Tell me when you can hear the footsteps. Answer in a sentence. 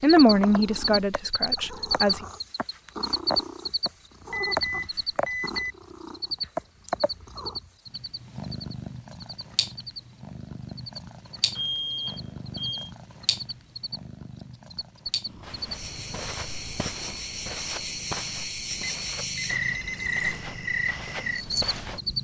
You can hear the footsteps from 15.3 to 22.0 s.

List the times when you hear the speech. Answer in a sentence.
The speech can be heard from 0.0 to 2.2 s.